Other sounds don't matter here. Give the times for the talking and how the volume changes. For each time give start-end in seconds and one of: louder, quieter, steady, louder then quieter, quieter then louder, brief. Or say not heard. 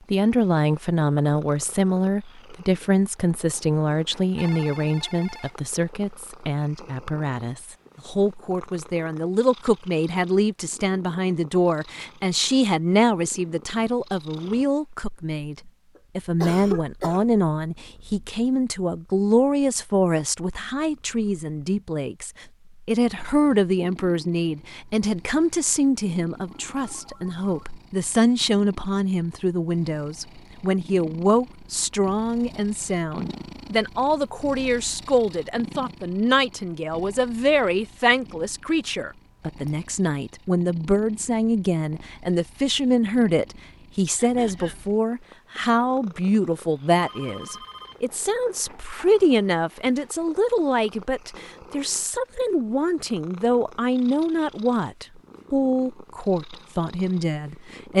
0.1-57.9 steady.